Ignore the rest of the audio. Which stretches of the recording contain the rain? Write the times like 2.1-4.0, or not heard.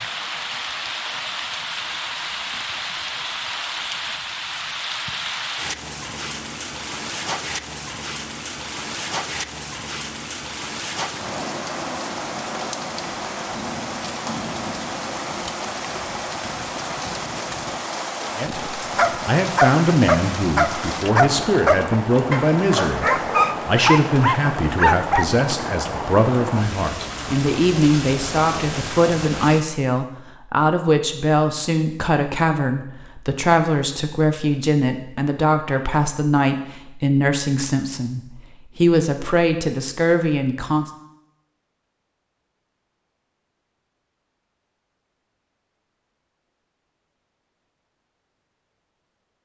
0.0-29.6.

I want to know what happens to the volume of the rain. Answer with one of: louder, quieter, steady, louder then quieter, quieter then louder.
steady.